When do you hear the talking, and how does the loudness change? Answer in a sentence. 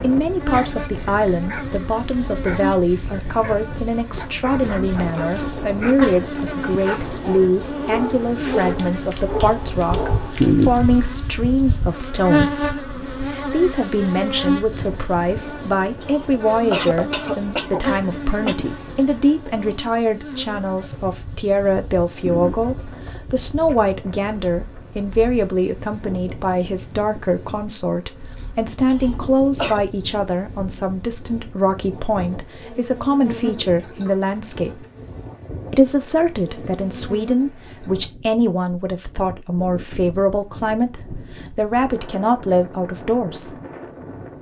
You can hear the talking from 0.0 to 34.9 s, at a steady volume; and from 35.7 to 43.5 s, at a steady volume.